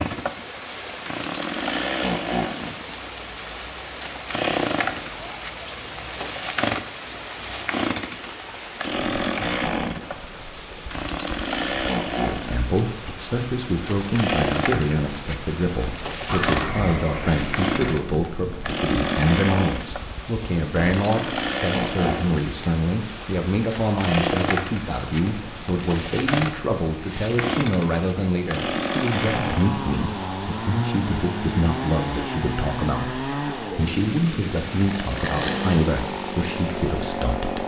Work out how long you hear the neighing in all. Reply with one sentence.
You can hear the neighing for 2 seconds altogether.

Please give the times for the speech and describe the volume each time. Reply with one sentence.
The speech can be heard from 12.2 to 37.6 s, at a steady volume.